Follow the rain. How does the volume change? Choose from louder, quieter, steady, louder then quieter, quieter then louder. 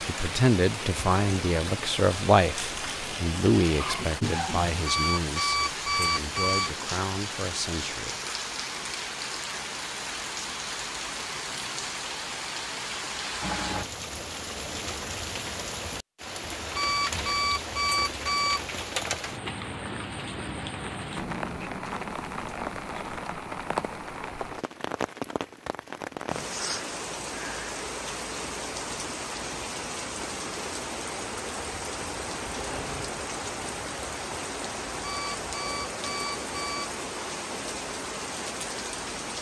steady.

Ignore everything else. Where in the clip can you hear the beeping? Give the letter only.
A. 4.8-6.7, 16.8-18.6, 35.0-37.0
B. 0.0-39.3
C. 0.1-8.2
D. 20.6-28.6
A.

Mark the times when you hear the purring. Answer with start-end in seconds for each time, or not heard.
not heard.